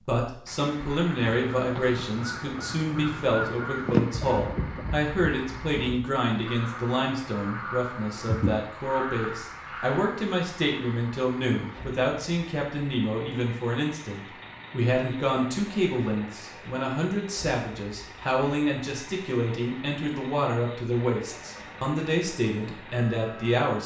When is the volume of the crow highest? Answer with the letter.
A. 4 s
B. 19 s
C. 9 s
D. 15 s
A.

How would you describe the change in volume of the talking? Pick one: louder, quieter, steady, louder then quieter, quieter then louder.
steady.